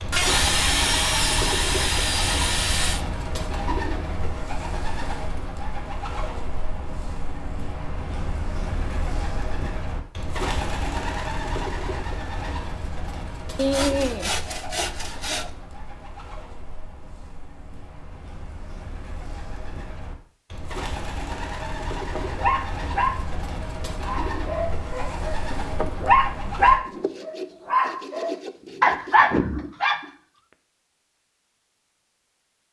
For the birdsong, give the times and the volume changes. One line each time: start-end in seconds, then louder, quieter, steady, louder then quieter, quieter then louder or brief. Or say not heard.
0.0-26.8 quieter then louder.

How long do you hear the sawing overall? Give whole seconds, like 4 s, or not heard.
7 s.